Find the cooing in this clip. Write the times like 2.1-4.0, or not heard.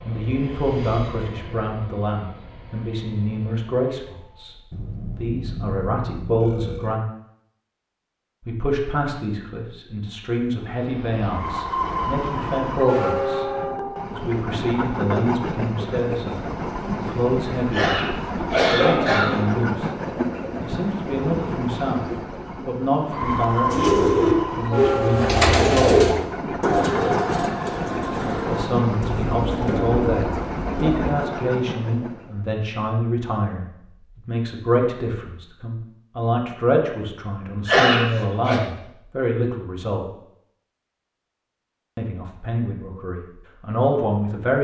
23.7-31.1.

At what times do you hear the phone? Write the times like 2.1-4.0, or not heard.
4.7-7.0.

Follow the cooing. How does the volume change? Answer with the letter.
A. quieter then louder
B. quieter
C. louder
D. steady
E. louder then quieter
B.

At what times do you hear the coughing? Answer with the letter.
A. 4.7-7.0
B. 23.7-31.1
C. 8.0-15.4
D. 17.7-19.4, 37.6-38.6
D.